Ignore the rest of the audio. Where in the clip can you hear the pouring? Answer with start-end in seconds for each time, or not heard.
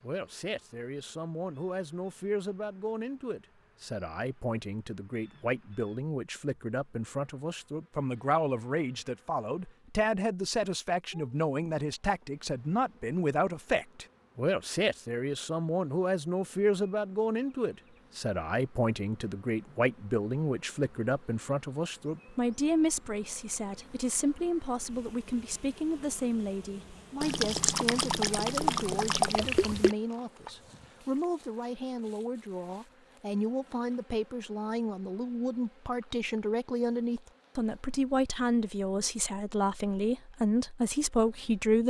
27.2-29.9.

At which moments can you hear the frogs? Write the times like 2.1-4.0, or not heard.
not heard.